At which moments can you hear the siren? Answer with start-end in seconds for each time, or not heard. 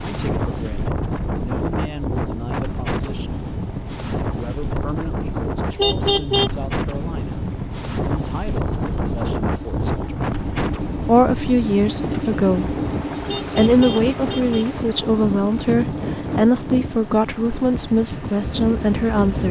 not heard.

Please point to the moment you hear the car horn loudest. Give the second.
6 s.